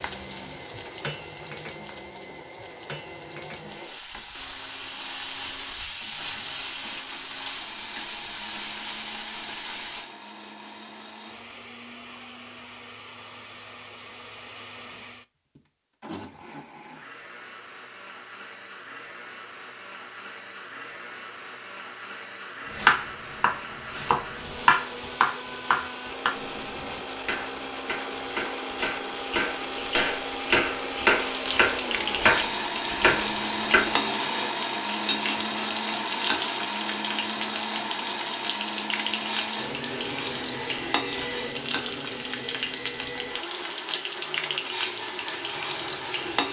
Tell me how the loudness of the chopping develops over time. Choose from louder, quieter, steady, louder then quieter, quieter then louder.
quieter then louder.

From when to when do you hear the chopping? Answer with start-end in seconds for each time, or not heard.
22.8-33.9.